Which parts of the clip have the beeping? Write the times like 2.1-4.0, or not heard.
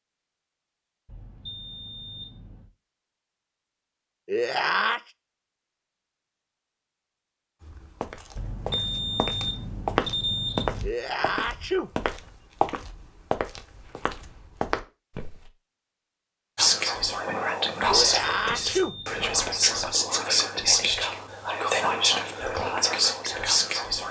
1.1-2.7, 8.3-10.9, 18.0-19.6.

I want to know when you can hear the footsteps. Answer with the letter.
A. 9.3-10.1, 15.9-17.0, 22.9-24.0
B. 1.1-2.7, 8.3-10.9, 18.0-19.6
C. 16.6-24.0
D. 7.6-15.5
D.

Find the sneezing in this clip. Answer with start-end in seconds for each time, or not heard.
4.2-5.0, 10.8-11.9, 17.9-18.9.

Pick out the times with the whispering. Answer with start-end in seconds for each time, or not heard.
16.6-24.0.